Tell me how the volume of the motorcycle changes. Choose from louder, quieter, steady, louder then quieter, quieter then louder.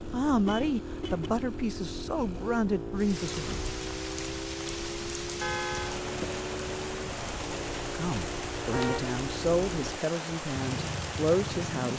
steady.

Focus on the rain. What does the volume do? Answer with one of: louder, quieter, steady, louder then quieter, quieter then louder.
steady.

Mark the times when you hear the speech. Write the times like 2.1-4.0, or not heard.
0.1-3.5, 7.8-11.9.